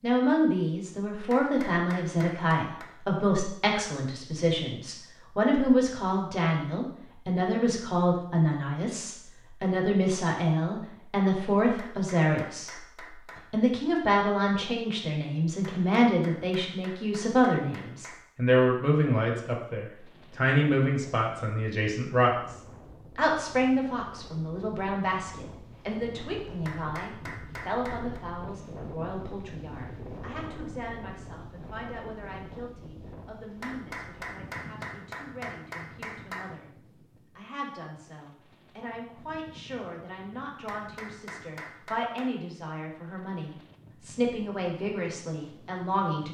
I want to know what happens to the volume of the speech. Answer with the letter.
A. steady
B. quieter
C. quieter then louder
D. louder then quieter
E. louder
C.